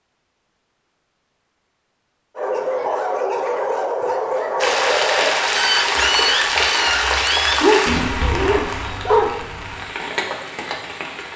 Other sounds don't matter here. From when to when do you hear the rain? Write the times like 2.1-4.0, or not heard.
4.5-11.3.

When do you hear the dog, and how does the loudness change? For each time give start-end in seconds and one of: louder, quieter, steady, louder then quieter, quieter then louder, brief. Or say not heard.
2.4-9.3 steady.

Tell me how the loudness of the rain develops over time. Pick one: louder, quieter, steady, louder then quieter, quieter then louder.
quieter.